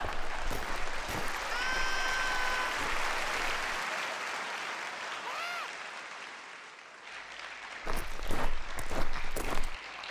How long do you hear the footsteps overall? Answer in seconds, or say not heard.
6 s.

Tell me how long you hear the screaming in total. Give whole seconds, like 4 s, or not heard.
2 s.